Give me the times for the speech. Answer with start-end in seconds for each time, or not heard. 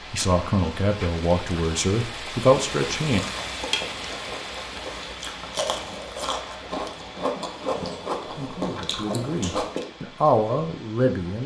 0.1-3.2, 8.2-11.4.